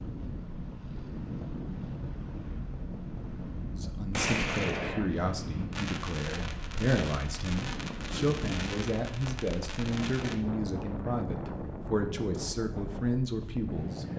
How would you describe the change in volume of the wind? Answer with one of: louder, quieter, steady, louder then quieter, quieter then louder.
steady.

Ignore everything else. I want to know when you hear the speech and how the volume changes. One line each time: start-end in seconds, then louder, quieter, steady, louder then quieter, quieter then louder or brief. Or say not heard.
3.7-14.1 steady.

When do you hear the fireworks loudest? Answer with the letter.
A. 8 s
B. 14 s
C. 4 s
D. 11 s
C.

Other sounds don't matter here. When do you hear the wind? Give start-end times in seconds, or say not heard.
0.0-14.1.